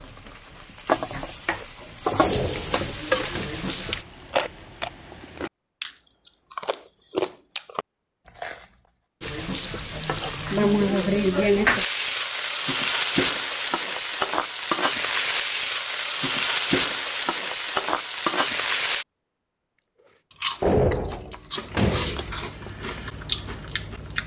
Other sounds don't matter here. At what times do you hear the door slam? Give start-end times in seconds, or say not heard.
2.2-3.5, 20.6-22.4.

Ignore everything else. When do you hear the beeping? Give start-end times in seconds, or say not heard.
9.6-10.2.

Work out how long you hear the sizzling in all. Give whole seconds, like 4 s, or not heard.
14 s.